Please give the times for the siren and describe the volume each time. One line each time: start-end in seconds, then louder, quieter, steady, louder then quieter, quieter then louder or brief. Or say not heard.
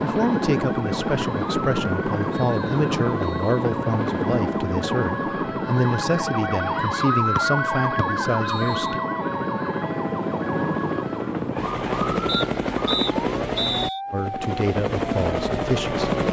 0.0-16.2 louder then quieter.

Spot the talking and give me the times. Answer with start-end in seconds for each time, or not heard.
0.0-9.0, 14.1-16.1.